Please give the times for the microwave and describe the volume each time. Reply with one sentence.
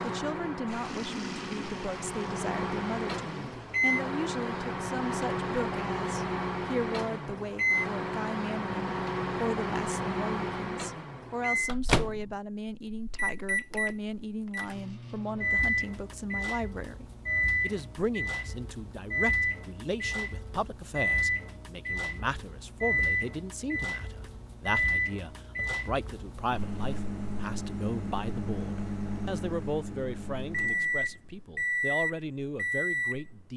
The microwave can be heard from 0.0 to 33.4 s, at a steady volume.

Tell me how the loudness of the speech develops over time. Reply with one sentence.
The volume of the speech stays about the same.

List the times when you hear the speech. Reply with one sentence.
The speech can be heard from 0.0 to 33.5 s.